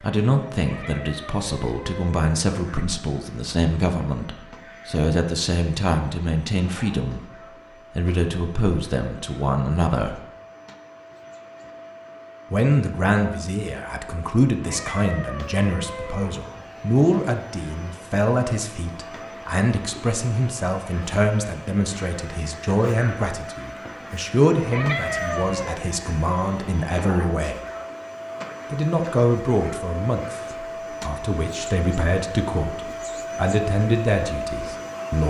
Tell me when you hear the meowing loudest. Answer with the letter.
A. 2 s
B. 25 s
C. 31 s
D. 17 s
B.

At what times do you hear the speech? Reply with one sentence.
You can hear the speech from 0.0 to 7.3 s, from 8.0 to 10.2 s, from 12.5 to 27.6 s and from 28.7 to 35.2 s.